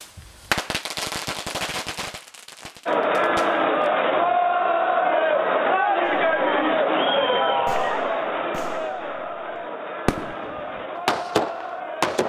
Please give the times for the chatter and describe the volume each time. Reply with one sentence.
You can hear the chatter from 2.9 to 12.2 s, getting quieter.